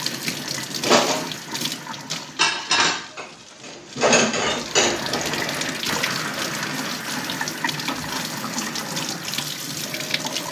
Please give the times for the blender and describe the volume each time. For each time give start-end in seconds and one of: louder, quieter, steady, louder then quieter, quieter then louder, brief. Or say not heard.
4.8-10.4 quieter.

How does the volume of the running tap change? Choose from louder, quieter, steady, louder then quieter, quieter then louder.
quieter then louder.